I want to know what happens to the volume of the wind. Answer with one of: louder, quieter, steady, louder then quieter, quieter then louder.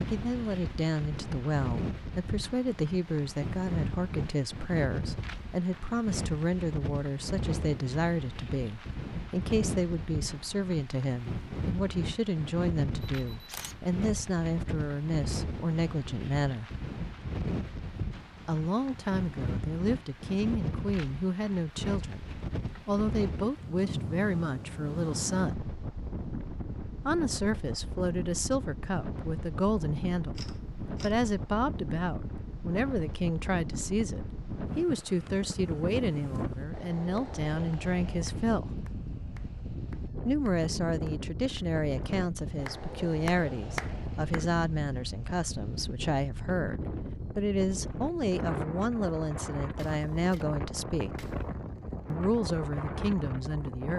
steady.